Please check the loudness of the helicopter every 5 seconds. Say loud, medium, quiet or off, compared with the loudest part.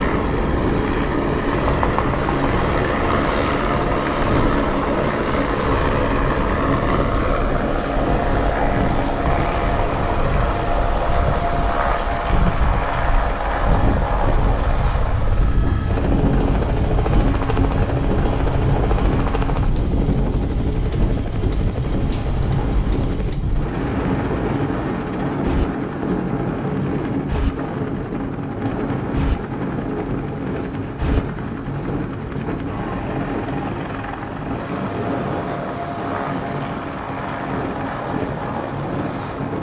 loud, loud, loud, medium, medium, quiet, medium, medium.